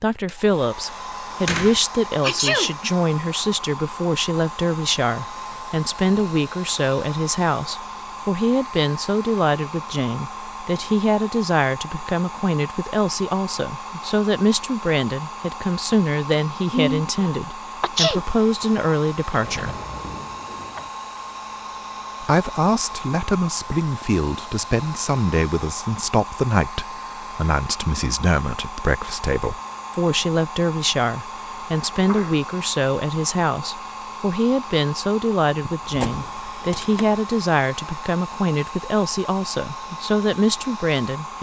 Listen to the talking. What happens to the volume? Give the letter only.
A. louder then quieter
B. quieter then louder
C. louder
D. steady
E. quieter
D.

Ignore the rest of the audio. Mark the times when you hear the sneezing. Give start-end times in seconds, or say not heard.
2.2-3.0, 16.7-18.2, 31.9-32.4.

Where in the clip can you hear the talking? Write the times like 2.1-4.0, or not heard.
0.0-19.8, 22.2-41.3.